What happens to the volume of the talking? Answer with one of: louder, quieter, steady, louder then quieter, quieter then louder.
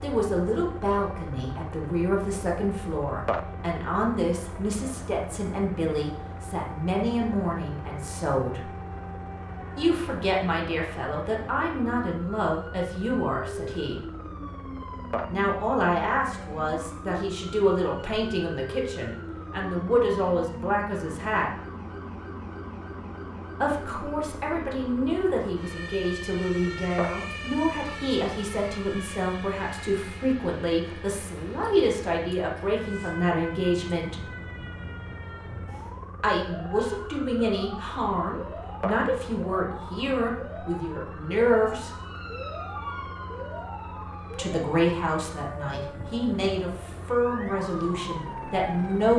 steady.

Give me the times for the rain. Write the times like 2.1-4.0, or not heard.
not heard.